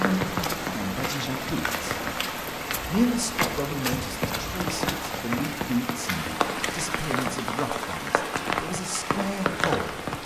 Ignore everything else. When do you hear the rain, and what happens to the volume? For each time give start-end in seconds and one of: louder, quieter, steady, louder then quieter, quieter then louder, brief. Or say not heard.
0.0-10.2 steady.